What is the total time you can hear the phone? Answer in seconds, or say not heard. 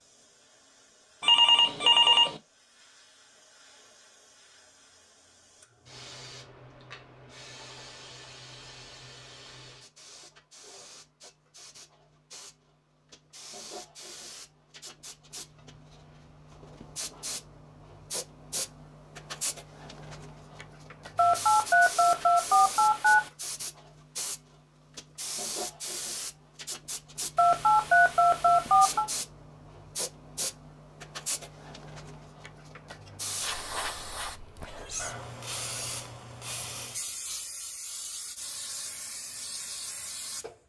5 s.